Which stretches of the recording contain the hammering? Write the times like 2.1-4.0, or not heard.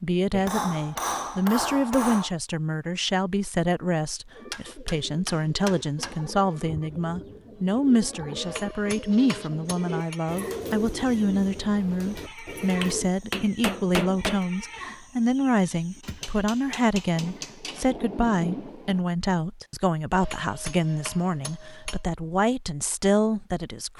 0.3-2.3, 4.5-6.2, 8.3-10.2, 12.8-14.4, 16.0-17.9, 20.1-22.0.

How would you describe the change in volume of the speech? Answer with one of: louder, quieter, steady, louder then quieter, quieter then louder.
steady.